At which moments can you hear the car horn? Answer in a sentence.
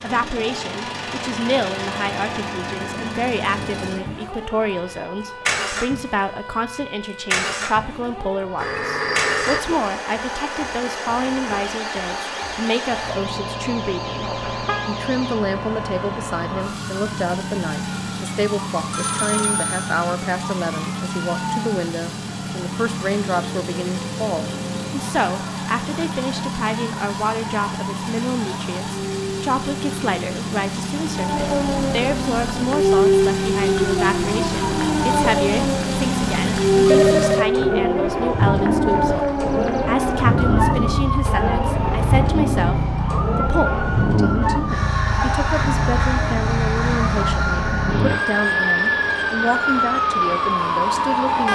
You can hear the car horn from 14.2 to 14.9 s.